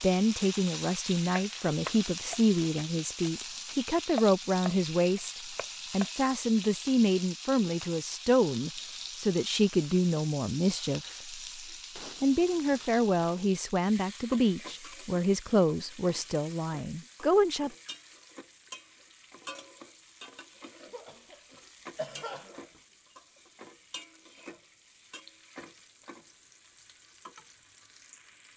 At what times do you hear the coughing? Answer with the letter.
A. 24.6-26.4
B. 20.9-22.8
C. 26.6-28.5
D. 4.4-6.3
B.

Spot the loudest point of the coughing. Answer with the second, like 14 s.
22 s.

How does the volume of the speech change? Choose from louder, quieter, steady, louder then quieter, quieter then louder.
steady.